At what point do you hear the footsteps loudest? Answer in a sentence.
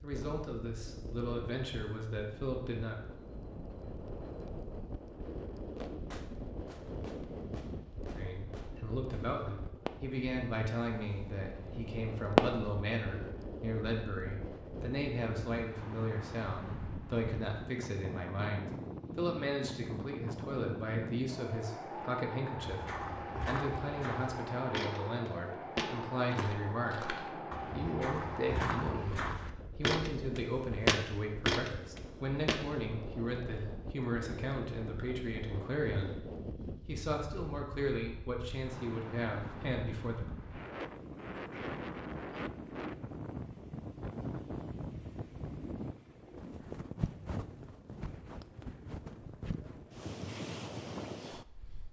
The loudest moment of the footsteps is at 31 seconds.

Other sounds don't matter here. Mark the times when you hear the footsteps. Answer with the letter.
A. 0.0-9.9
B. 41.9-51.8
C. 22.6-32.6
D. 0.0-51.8
C.